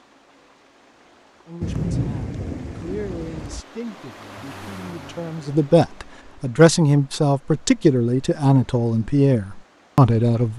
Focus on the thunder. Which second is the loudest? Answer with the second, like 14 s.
2 s.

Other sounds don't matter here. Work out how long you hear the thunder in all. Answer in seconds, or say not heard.
2 s.